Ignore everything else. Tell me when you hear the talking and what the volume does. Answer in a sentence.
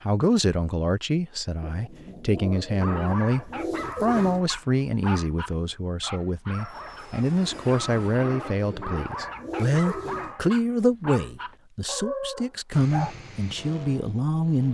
You can hear the talking from 0.0 to 14.6 s, at a steady volume.